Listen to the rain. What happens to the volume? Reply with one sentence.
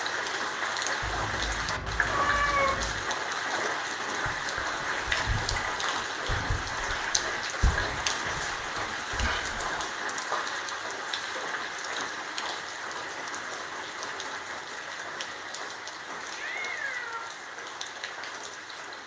The volume of the rain goes down.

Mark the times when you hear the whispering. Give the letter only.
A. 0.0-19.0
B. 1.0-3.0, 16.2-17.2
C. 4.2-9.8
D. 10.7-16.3
C.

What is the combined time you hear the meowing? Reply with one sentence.
You can hear the meowing for 3 seconds altogether.